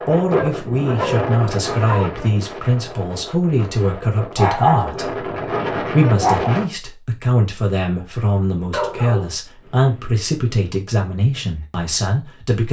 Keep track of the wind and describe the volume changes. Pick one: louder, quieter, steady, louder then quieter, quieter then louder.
quieter then louder.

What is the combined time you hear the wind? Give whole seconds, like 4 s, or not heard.
7 s.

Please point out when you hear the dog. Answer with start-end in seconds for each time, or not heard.
0.3-2.1, 4.3-5.0, 5.7-6.5, 8.7-10.5.